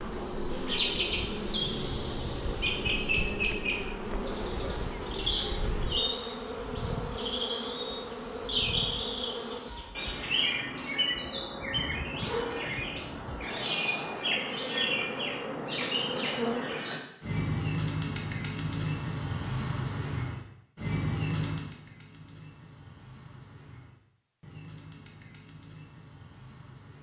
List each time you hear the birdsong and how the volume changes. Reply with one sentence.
The birdsong can be heard from 0.0 to 26.9 s, getting quieter.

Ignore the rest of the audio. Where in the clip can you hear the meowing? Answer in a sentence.
The meowing can be heard from 1.6 to 2.5 s.